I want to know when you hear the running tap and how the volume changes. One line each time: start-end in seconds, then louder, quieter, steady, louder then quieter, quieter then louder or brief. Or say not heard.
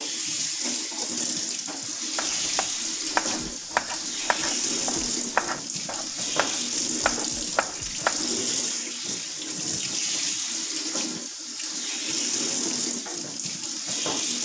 0.0-14.4 steady.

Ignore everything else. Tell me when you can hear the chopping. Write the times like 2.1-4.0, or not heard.
2.1-8.3.